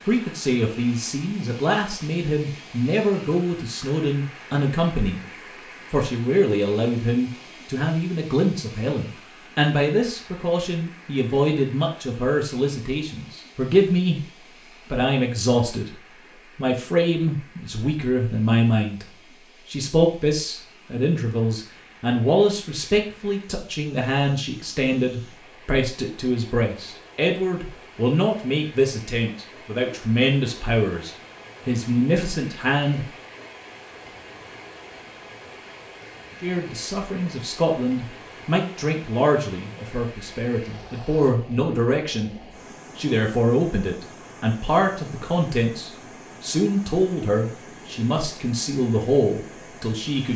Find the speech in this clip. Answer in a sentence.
The speech can be heard from 0.1 to 5.2 s, from 5.9 to 14.2 s, from 14.9 to 33.1 s, from 36.4 to 42.3 s and from 43.0 to 50.3 s.